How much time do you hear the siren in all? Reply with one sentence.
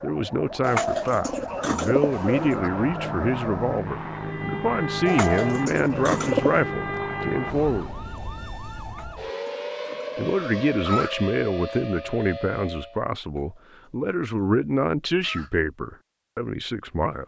The siren can be heard for 13 seconds in total.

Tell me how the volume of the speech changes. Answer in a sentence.
The loudness of the speech stays about the same.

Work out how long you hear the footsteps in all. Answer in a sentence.
The footsteps can't be heard in this clip.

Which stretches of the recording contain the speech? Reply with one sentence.
The speech can be heard from 0.0 to 7.9 s and from 10.2 to 17.2 s.